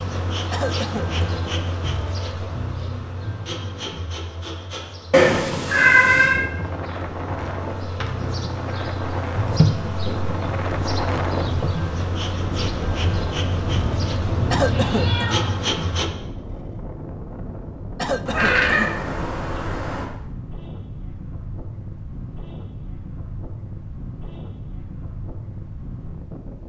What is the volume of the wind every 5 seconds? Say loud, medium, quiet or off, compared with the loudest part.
off, loud, loud, medium, medium, medium.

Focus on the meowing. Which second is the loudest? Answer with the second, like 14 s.
6 s.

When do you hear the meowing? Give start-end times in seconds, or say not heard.
5.1-6.4, 13.8-15.6, 18.2-20.1.